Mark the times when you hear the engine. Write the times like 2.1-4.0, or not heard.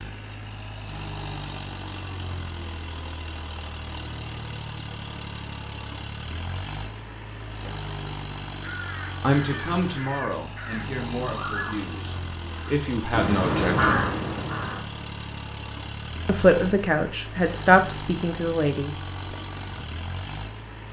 0.0-20.8.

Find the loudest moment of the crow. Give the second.
14 s.